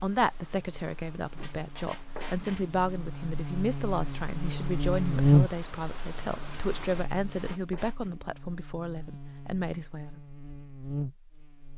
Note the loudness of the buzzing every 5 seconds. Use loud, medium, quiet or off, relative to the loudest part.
medium, loud, medium.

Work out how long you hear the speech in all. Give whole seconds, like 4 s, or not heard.
10 s.